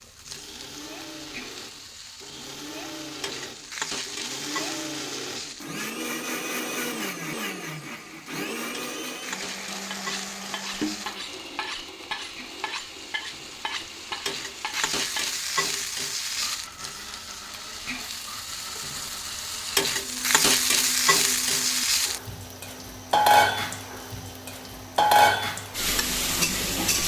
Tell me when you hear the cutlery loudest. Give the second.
11 s.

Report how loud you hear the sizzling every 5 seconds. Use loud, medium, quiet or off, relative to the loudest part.
quiet, quiet, quiet, medium, loud, loud.